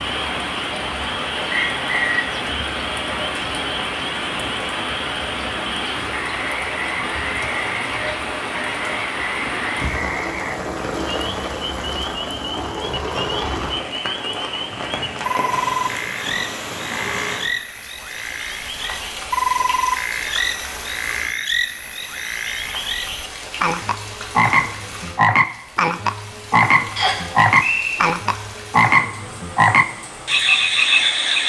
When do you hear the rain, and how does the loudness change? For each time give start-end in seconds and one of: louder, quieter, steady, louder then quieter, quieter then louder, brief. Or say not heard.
0.0-31.4 quieter.